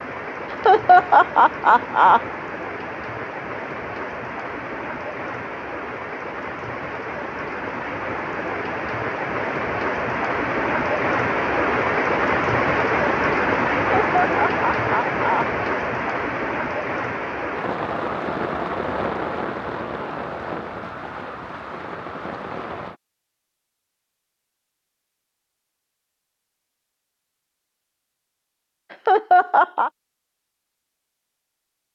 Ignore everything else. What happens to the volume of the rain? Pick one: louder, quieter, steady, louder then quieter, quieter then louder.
louder then quieter.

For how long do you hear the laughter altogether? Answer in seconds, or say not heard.
4 s.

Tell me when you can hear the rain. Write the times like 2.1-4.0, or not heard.
0.0-22.9.